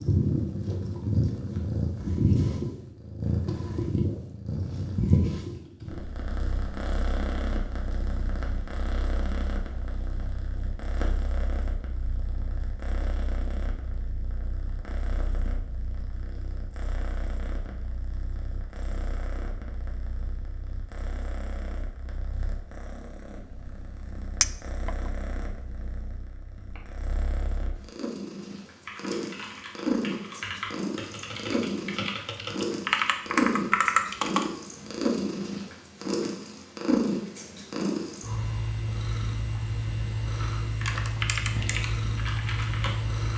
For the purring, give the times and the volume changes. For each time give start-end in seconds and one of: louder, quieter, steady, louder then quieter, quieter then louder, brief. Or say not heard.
0.0-43.3 quieter then louder.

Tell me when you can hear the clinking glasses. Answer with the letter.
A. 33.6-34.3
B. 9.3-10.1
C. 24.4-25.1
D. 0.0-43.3
C.